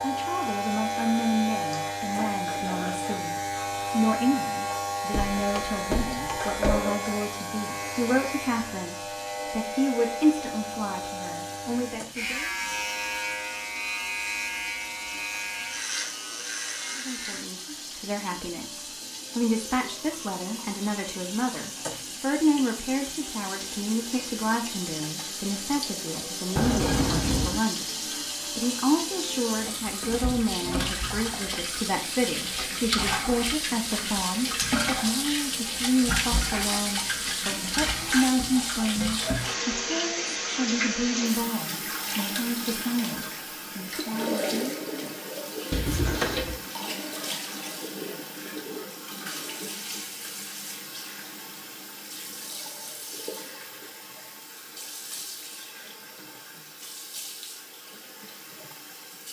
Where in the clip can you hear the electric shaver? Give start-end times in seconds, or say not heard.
0.0-17.4.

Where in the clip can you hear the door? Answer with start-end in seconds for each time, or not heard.
5.1-6.8, 26.6-27.6, 45.7-46.5.